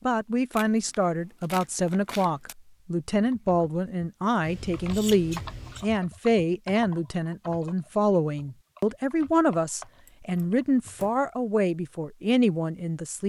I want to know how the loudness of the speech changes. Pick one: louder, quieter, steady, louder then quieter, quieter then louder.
steady.